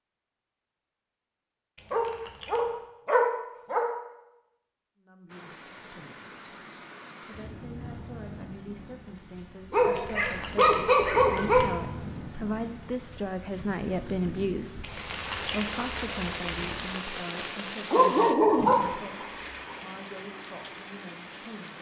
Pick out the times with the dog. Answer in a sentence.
The dog can be heard from 1.9 to 3.9 s, from 9.7 to 11.6 s and from 17.9 to 19.8 s.